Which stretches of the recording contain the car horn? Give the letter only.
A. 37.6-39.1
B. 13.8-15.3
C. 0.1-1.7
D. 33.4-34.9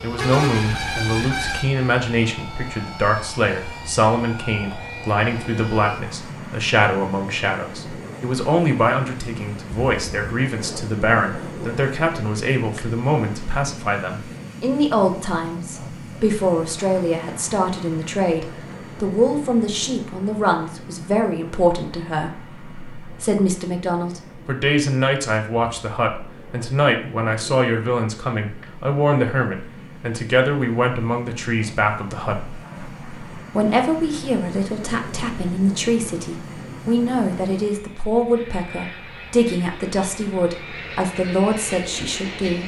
C.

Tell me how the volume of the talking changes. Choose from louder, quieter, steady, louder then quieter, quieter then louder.
steady.